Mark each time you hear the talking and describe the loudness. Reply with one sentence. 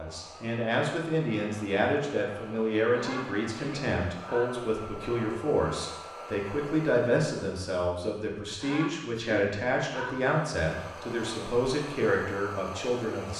The talking can be heard from 0.0 to 13.3 s, at a steady volume.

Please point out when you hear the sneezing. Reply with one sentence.
You can hear the sneezing from 2.9 to 4.5 s and from 8.4 to 10.2 s.